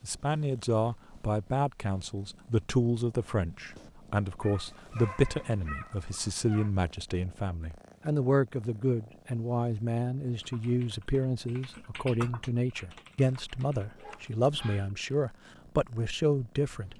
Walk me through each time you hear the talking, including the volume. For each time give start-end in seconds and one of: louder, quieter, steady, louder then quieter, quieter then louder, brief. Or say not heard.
0.0-16.9 steady.